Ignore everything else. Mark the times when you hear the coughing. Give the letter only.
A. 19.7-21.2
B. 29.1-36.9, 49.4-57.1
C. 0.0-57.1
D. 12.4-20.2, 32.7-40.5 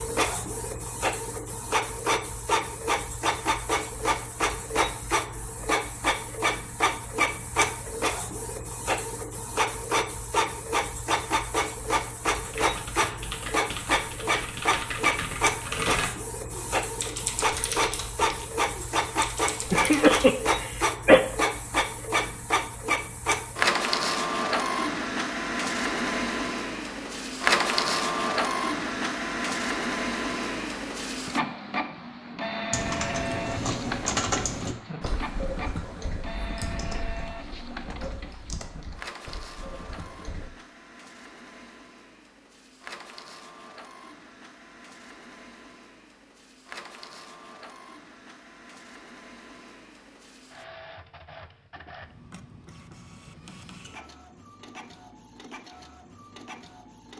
A.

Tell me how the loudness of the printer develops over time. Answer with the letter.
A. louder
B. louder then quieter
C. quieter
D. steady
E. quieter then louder
C.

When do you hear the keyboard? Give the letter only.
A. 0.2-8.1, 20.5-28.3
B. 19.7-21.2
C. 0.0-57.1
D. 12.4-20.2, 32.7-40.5
D.